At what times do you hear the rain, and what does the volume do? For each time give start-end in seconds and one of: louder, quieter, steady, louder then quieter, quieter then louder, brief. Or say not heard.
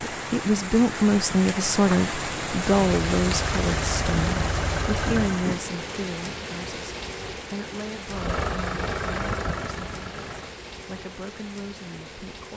0.0-12.5 quieter.